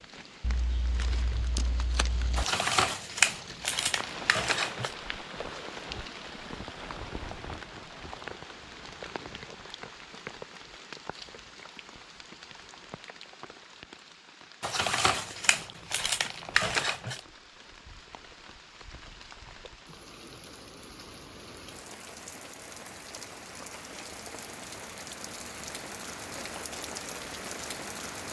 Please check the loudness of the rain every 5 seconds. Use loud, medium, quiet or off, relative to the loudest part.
loud, loud, medium, medium, medium, loud.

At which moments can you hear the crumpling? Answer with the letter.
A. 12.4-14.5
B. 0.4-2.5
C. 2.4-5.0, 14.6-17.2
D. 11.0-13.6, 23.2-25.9
C.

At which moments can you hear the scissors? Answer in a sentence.
You can hear the scissors from 0.4 to 2.5 s.